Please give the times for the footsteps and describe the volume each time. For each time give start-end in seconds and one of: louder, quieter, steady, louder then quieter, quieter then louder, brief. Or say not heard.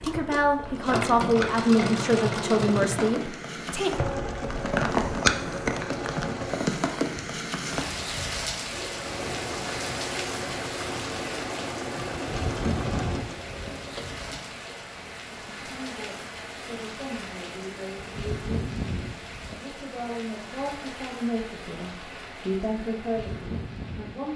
not heard.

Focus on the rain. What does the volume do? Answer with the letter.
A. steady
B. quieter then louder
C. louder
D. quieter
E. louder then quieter
D.